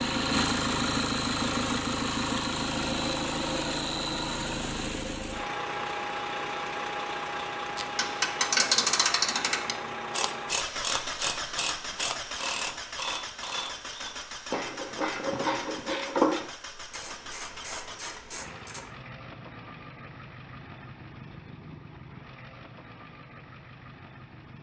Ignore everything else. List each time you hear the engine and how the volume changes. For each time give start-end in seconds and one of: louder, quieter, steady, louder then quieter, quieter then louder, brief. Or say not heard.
0.0-24.5 quieter.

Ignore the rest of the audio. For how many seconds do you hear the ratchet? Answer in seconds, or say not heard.
11 s.